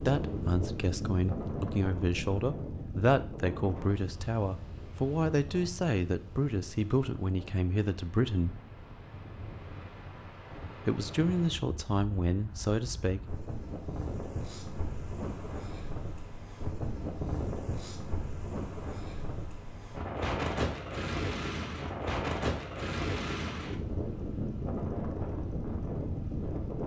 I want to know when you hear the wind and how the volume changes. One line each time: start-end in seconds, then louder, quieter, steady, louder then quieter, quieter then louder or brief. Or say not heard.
0.0-26.8 quieter then louder.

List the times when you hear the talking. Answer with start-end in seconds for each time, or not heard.
0.0-8.5, 10.8-13.2.